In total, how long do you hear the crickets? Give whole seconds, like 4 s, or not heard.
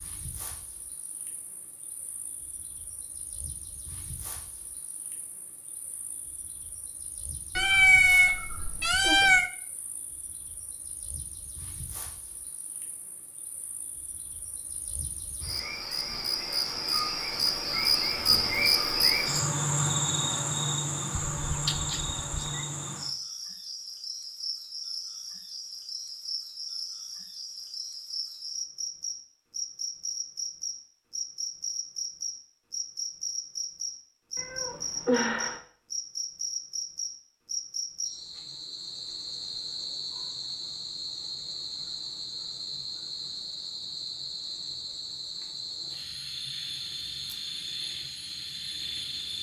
49 s.